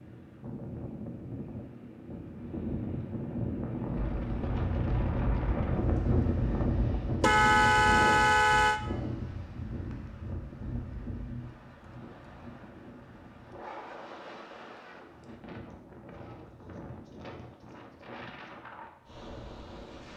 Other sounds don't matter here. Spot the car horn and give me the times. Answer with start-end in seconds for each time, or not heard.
7.2-8.8.